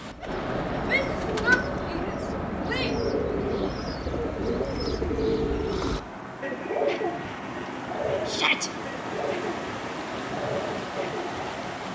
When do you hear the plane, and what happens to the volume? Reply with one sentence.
The plane can't be heard in this clip.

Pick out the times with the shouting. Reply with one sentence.
The shouting can be heard from 0.8 to 3.0 s and from 8.2 to 8.7 s.